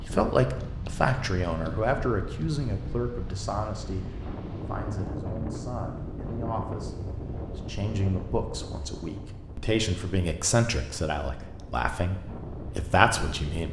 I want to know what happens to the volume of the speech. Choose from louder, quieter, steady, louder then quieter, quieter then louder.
quieter then louder.